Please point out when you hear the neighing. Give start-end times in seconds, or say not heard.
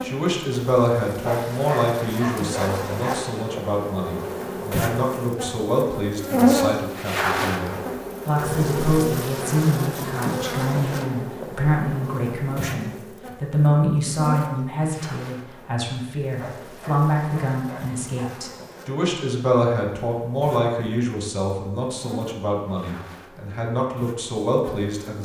not heard.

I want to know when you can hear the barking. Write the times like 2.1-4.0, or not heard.
1.2-3.6, 16.4-18.4.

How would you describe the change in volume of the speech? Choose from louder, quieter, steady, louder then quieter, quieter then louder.
steady.